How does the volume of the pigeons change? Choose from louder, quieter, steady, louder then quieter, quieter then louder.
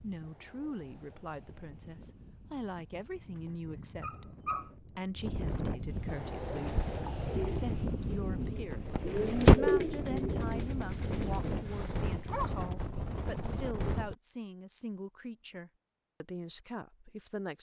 louder then quieter.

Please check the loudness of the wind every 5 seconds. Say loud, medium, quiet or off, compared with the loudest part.
quiet, loud, loud, off.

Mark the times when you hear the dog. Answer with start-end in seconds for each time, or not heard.
2.8-4.8, 10.8-12.7.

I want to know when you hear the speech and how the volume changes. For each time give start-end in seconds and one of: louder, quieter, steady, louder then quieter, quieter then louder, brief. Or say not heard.
0.0-17.5 steady.